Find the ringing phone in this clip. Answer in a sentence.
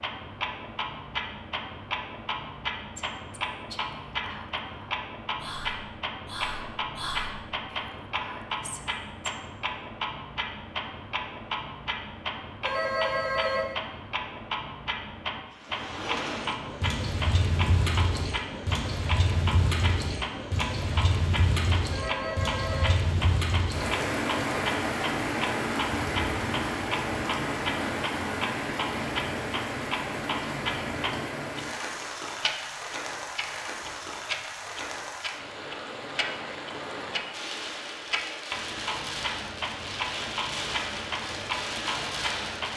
You can hear the ringing phone from 12.6 to 13.8 s and from 21.9 to 23.0 s.